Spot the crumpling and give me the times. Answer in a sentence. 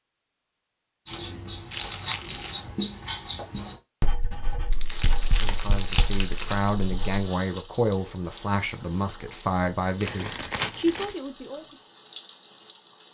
You can hear the crumpling from 1.7 to 2.5 s, from 4.7 to 6.8 s and from 10.0 to 11.2 s.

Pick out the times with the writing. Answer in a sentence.
The writing can be heard from 1.1 to 7.2 s.